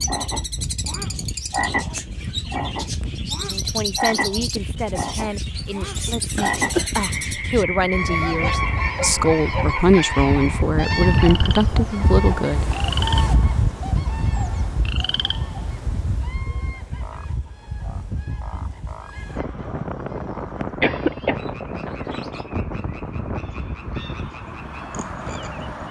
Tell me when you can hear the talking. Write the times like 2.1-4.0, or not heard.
3.4-12.7.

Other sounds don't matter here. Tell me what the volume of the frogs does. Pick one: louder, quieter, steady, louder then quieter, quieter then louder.
quieter.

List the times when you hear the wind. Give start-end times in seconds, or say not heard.
0.0-25.8.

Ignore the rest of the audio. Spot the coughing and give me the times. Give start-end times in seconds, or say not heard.
6.3-6.9, 20.8-21.4.